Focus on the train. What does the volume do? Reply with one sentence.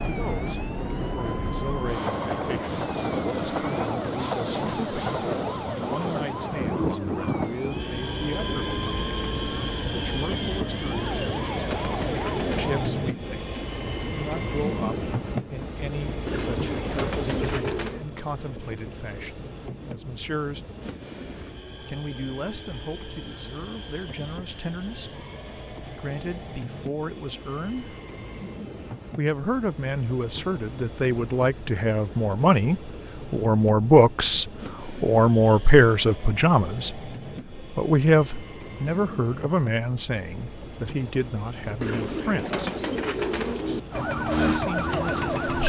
The loudness of the train goes down.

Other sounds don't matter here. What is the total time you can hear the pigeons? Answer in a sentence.
The pigeons can be heard for 6 seconds in total.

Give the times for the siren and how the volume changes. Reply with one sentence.
The siren can be heard from 0.0 to 12.7 s, at a steady volume; and briefly from 43.9 to 45.6 s.